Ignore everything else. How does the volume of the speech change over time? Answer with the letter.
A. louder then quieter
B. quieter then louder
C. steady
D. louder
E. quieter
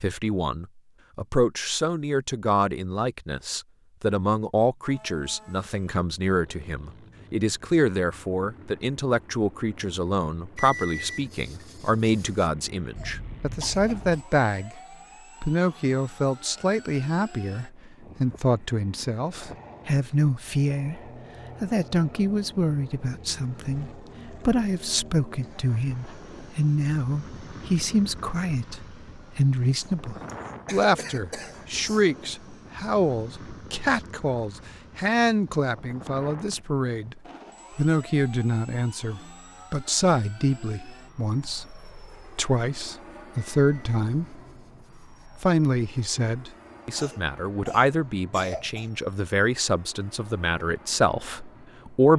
C.